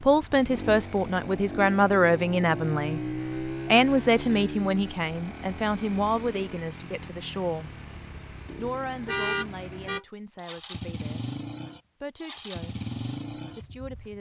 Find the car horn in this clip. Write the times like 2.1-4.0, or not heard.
9.1-10.1.